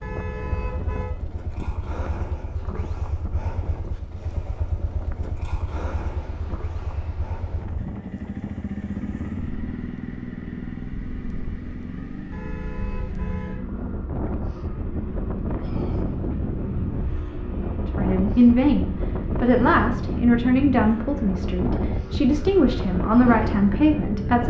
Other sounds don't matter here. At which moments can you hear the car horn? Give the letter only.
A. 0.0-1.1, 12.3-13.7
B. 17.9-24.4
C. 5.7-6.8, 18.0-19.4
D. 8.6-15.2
A.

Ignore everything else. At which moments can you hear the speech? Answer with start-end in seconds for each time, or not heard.
17.9-24.4.